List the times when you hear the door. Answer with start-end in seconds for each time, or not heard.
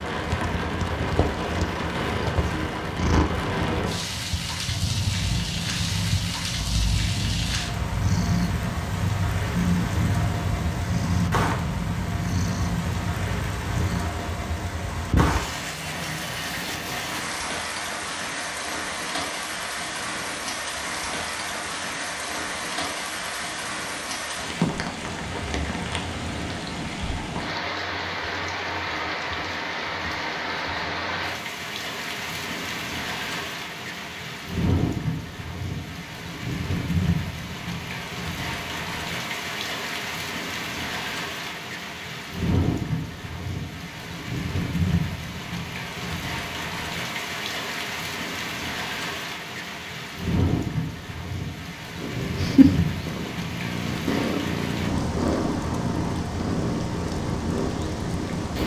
not heard.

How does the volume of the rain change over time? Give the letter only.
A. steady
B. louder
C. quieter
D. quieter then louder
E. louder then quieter
A.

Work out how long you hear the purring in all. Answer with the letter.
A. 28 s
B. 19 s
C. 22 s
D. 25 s
C.